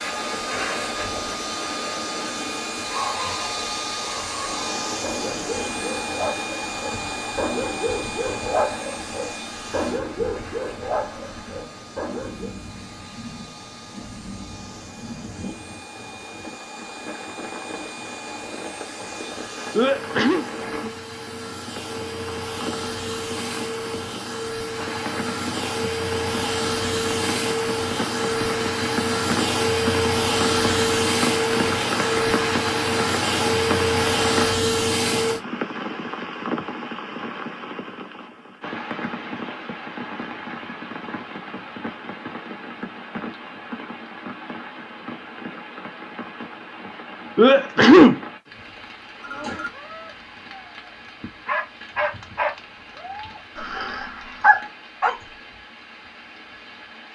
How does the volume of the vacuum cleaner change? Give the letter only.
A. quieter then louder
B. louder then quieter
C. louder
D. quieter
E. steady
A.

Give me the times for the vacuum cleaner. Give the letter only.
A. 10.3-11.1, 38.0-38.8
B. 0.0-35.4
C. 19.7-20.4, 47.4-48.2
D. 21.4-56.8
B.